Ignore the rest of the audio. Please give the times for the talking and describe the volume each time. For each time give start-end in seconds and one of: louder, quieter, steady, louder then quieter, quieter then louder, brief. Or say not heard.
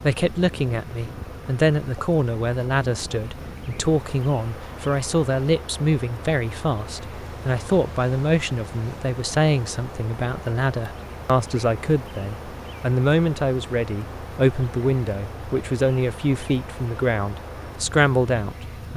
0.0-18.9 steady.